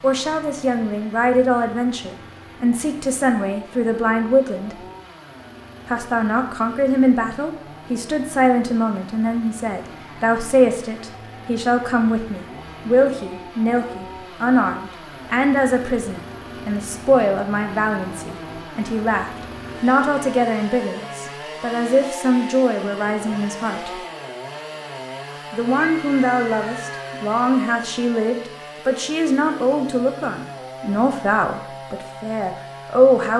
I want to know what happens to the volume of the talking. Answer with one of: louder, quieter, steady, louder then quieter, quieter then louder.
steady.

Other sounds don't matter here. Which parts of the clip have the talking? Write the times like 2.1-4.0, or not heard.
0.0-4.8, 5.8-24.0, 25.5-33.3.